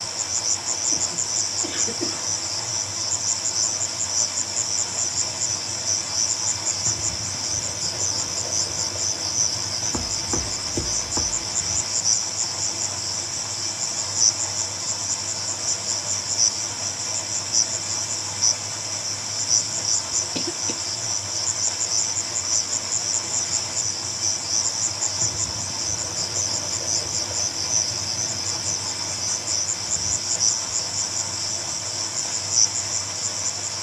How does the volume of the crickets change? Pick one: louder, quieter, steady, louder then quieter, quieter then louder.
steady.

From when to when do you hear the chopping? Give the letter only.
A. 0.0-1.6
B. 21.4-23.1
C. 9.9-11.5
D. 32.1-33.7
C.